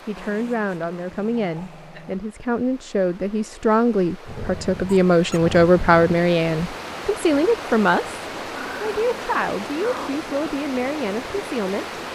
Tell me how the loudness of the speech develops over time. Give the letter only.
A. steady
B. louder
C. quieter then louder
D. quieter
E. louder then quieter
E.